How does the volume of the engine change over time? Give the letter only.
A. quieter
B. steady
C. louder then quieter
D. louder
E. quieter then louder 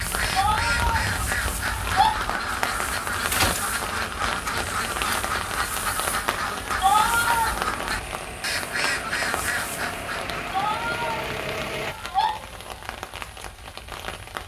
D.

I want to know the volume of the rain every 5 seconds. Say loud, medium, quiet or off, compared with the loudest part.
loud, loud, medium.